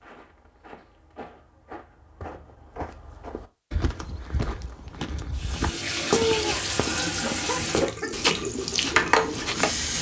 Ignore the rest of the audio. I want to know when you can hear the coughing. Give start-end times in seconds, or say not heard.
6.1-8.3.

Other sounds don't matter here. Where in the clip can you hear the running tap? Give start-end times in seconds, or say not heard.
5.3-9.9.